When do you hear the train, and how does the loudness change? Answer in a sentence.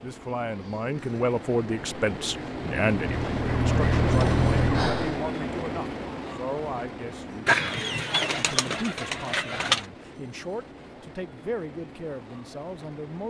You can hear the train from 0.0 to 13.2 s, getting louder then quieter.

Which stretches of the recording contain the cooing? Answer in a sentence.
You can hear the cooing from 7.5 to 9.8 s.